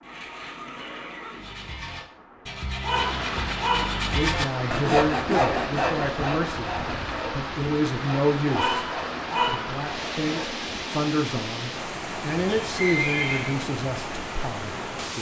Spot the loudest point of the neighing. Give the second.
13 s.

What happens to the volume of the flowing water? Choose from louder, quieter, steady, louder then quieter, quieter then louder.
louder.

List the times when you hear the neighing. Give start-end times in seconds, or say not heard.
0.0-2.0, 12.3-13.6.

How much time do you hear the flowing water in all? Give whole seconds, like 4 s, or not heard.
15 s.